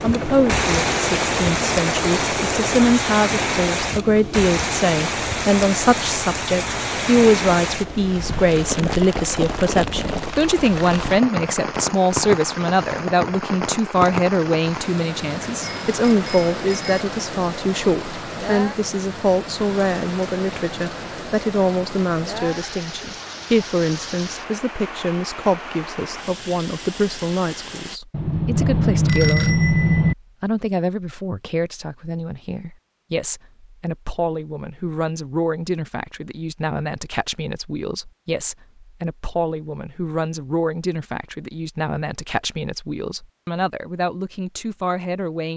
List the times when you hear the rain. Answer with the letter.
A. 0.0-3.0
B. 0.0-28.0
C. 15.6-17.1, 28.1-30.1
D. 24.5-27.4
B.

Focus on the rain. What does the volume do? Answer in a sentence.
The loudness of the rain goes down.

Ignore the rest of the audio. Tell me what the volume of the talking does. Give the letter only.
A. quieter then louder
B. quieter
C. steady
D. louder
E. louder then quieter
B.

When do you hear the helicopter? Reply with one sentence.
The helicopter can be heard from 0.0 to 3.0 s.